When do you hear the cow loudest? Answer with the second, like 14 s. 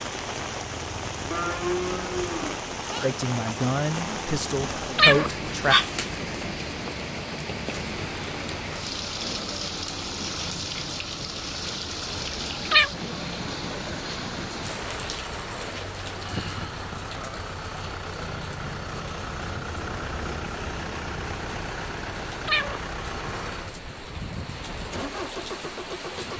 2 s.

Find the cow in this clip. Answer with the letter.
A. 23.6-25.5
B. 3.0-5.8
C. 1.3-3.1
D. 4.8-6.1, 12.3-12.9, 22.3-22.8
C.